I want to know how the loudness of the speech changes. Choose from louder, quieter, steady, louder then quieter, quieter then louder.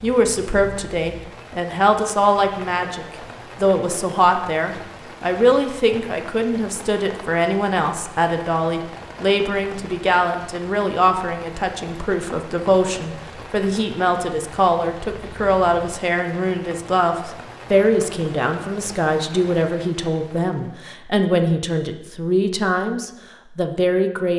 steady.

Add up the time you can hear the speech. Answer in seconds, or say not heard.
24 s.